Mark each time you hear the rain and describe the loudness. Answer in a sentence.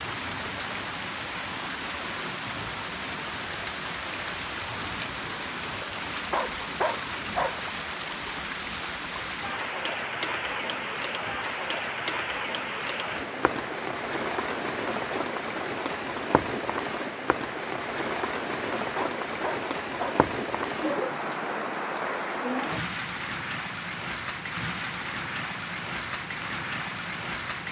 The rain can be heard from 0.0 to 27.6 s, at a steady volume.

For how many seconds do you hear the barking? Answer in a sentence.
The barking can be heard for 3 seconds in total.